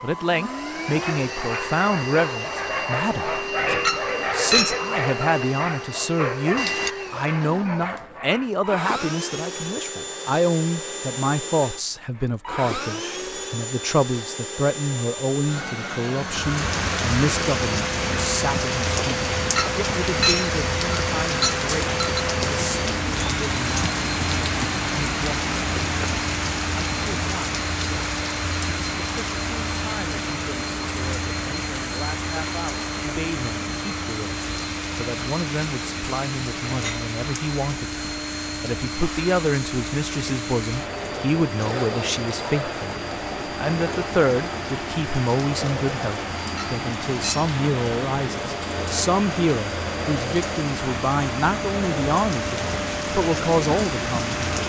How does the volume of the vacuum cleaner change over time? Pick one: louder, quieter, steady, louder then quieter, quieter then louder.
steady.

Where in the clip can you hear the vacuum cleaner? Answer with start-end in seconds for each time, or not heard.
0.0-54.6.